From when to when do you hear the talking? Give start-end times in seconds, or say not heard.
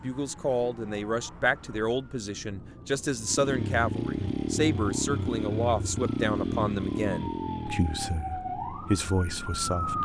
0.0-10.0.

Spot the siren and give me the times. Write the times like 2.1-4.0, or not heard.
0.0-10.0.